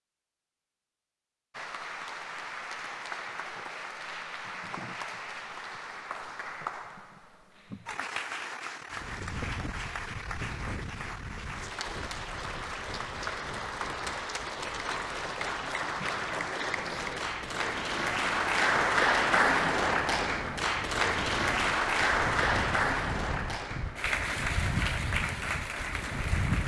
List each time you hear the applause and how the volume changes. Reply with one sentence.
You can hear the applause from 1.5 to 26.6 s, getting louder.